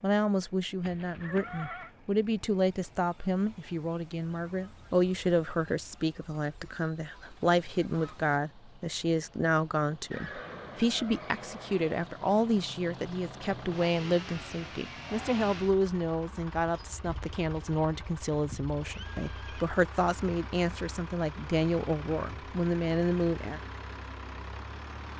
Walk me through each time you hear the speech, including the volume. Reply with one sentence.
You can hear the speech from 0.0 to 23.6 s, at a steady volume.